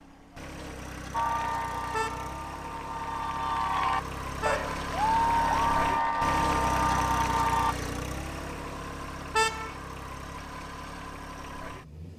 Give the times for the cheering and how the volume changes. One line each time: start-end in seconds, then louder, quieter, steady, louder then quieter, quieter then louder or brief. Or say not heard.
1.1-7.8 louder.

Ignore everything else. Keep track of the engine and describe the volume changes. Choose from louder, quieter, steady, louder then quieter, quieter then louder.
louder then quieter.